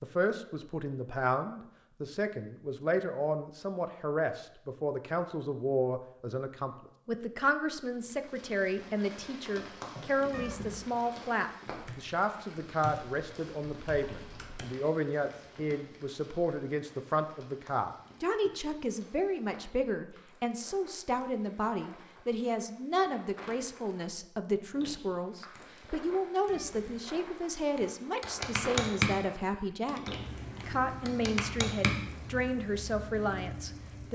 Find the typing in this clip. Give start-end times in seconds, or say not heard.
11.7-14.7, 27.8-29.1, 29.9-31.9.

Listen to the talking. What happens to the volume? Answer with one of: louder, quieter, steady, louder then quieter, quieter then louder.
steady.